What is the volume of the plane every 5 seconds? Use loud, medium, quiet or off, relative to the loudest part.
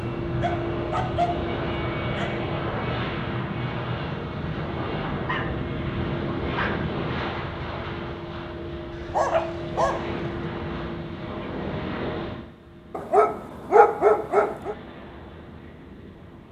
loud, loud, medium, quiet.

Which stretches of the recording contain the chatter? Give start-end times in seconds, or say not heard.
not heard.